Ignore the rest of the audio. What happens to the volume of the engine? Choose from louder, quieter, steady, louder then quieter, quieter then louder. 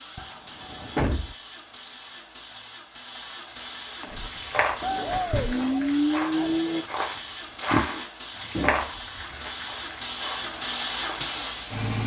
louder.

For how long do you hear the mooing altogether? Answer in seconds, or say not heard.
2 s.